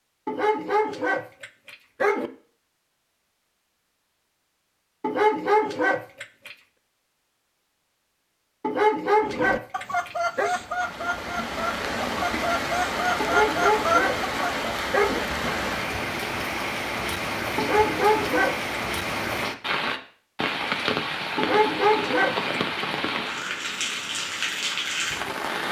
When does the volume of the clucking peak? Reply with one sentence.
The volume of the clucking peaks at 14 seconds.